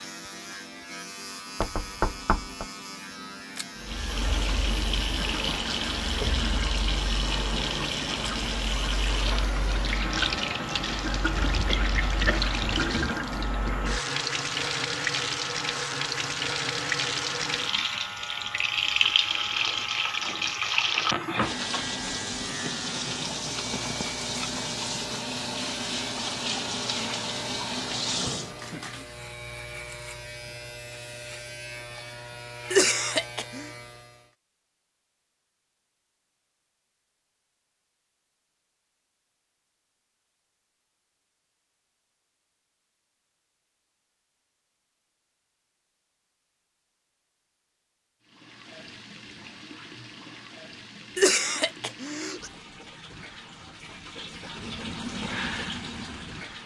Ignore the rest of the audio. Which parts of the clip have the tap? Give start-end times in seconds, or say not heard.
3.8-28.8, 48.2-56.6.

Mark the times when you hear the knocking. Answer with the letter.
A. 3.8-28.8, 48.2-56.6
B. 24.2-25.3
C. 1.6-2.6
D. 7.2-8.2
C.